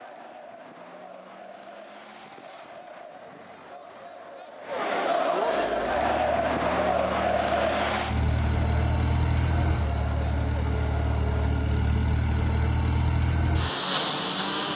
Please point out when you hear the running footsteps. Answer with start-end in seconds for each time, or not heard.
not heard.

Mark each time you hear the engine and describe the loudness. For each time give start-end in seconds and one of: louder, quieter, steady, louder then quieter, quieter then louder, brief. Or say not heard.
5.5-14.7 louder.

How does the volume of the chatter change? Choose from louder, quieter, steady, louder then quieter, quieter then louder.
louder then quieter.